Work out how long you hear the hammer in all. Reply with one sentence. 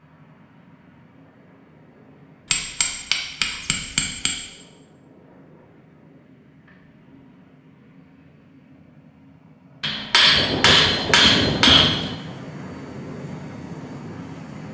The hammer can be heard for 4 seconds in total.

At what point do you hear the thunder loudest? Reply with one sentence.
The loudest moment of the thunder is at 12 seconds.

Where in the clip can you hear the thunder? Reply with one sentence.
You can hear the thunder from 10.3 to 12.2 s.